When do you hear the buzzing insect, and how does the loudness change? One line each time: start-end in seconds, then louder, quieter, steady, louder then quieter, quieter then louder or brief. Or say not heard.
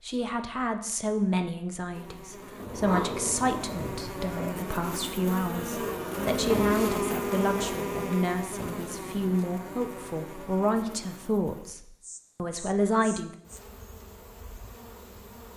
1.9-15.5 louder then quieter.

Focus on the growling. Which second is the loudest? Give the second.
3 s.